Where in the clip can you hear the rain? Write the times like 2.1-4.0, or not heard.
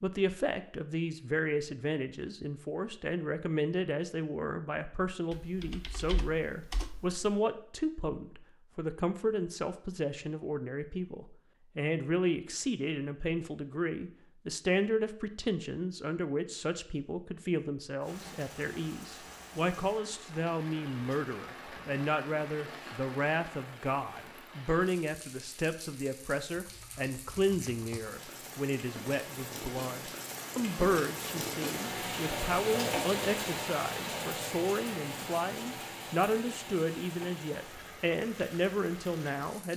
18.0-39.7.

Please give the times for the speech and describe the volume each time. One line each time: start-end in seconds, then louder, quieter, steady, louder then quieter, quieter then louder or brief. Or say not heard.
0.0-39.7 steady.